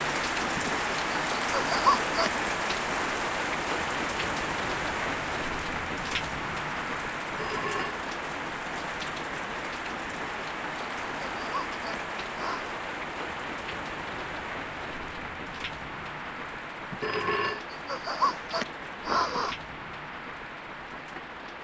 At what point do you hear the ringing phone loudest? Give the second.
17 s.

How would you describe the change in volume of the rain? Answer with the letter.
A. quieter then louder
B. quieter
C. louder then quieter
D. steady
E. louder
B.